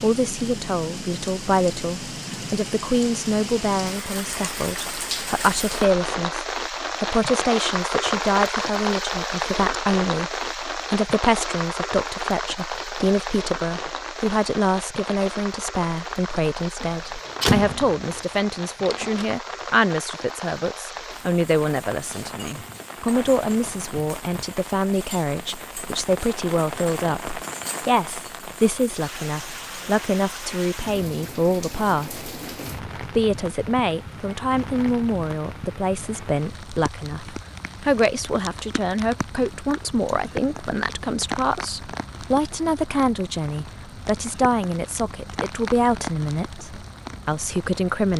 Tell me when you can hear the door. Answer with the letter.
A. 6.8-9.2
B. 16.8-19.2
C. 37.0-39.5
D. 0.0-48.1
B.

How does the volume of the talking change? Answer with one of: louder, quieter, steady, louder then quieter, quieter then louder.
steady.